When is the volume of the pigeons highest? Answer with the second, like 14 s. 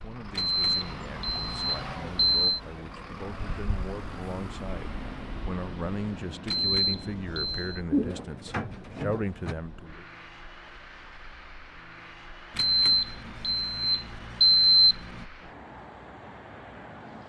8 s.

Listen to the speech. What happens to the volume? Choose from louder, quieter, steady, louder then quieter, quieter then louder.
louder.